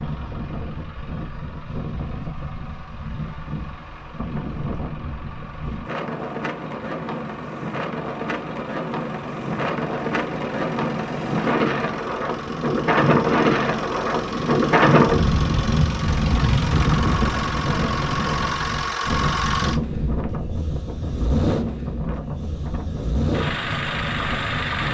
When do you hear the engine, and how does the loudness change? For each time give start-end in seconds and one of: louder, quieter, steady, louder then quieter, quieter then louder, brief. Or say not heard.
0.0-24.8 louder.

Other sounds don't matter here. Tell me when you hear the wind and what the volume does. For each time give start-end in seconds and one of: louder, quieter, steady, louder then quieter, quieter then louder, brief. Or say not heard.
0.0-24.8 louder then quieter.